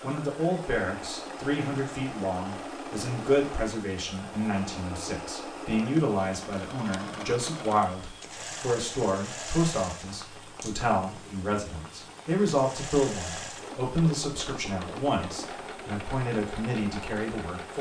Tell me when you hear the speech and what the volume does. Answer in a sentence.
The speech can be heard from 0.0 to 17.7 s, at a steady volume.